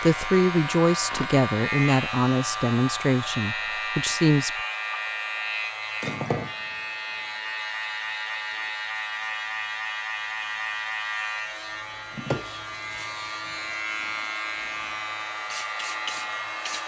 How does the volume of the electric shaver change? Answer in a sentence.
The loudness of the electric shaver stays about the same.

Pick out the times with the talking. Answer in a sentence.
You can hear the talking from 0.0 to 4.5 s.